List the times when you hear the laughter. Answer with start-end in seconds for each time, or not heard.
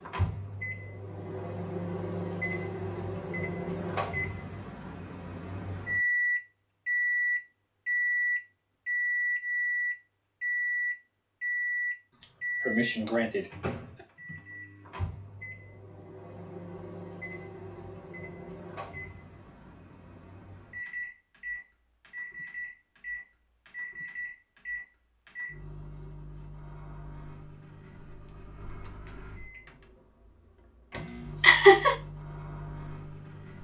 12.1-14.1, 31.1-31.9.